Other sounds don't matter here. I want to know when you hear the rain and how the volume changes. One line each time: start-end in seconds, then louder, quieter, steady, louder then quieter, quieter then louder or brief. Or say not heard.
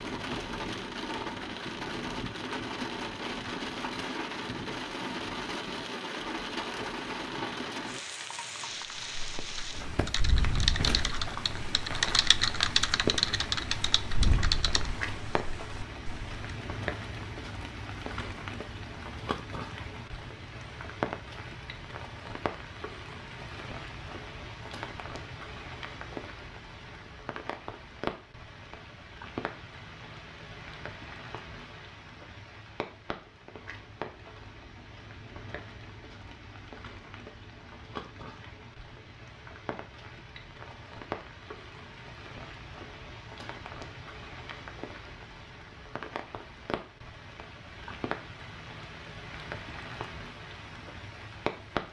0.0-51.8 quieter.